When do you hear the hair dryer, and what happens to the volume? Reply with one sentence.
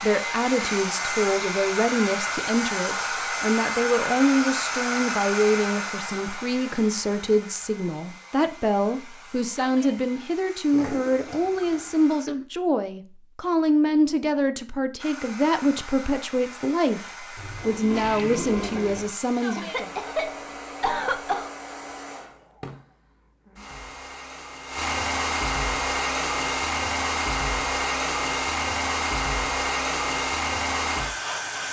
The hair dryer can be heard from 0.0 to 12.2 s, getting quieter; and from 14.9 to 31.6 s, getting louder.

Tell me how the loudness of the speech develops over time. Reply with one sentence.
The loudness of the speech stays about the same.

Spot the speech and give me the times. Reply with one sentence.
You can hear the speech from 0.0 to 19.9 s.